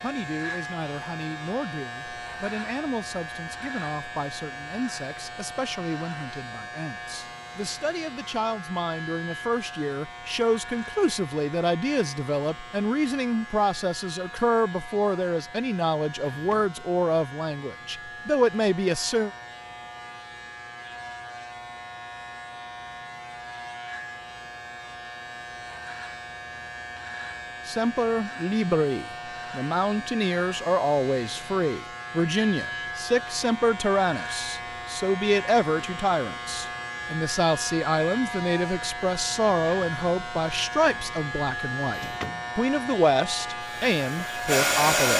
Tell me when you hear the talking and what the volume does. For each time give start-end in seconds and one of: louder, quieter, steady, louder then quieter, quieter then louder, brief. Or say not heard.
0.0-19.3 louder
27.6-45.1 steady.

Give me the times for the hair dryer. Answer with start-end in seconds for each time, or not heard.
43.5-45.1.